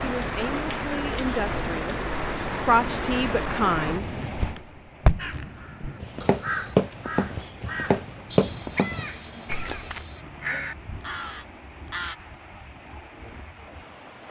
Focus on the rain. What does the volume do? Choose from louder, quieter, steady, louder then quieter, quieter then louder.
quieter.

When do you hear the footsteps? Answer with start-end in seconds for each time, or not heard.
4.3-10.0.